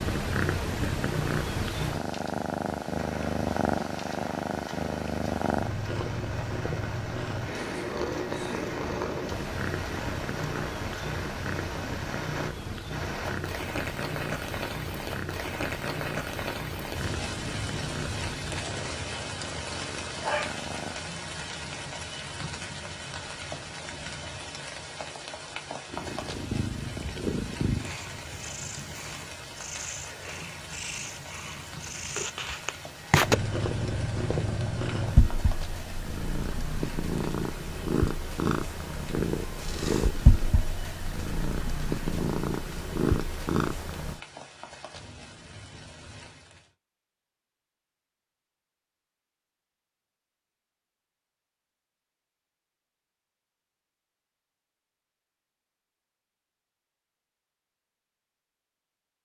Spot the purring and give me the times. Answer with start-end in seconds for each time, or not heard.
0.0-21.0, 25.9-44.2.